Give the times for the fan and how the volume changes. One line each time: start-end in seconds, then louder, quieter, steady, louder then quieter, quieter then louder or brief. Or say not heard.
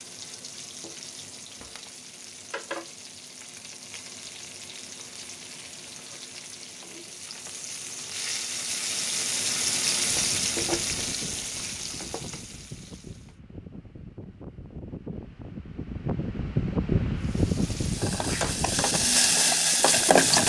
10.1-20.1 louder then quieter.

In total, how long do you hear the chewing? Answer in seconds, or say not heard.
not heard.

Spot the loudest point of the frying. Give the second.
20 s.